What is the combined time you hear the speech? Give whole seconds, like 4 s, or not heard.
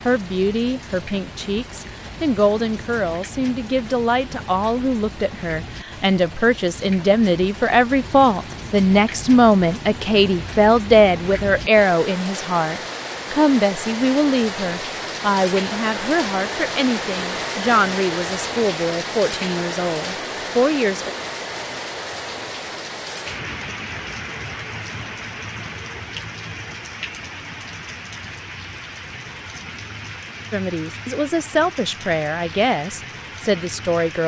25 s.